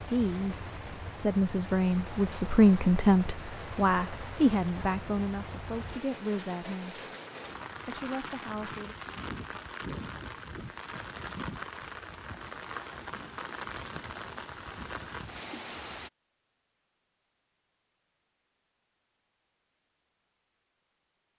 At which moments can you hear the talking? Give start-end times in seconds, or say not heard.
0.0-7.0, 7.8-8.9.